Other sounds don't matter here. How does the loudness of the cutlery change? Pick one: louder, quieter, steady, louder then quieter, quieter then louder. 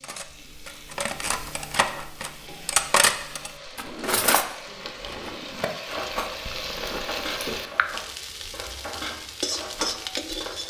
louder then quieter.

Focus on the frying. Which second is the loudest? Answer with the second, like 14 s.
10 s.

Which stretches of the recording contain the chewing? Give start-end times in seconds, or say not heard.
6.3-7.7.